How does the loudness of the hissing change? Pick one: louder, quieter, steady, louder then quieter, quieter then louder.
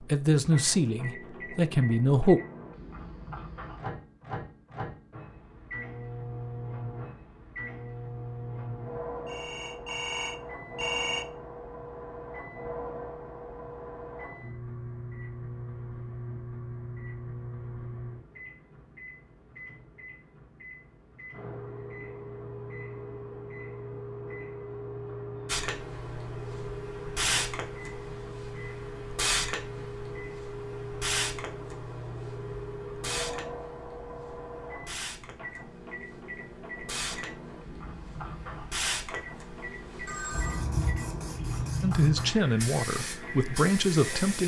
quieter then louder.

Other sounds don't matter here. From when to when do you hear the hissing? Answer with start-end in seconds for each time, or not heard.
25.4-44.4.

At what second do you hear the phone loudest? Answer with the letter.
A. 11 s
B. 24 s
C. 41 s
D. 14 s
A.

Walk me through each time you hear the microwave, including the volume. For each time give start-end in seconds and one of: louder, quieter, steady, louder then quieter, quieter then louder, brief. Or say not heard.
0.0-44.4 steady.